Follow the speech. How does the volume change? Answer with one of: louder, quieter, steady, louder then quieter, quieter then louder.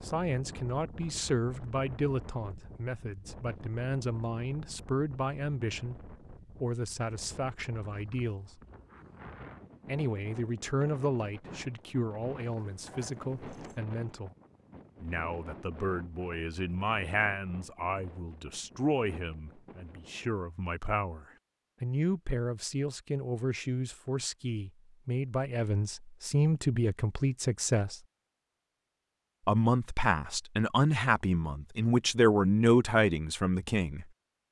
louder.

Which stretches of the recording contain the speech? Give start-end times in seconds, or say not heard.
0.0-8.6, 9.8-14.3, 15.0-27.9, 29.4-34.0.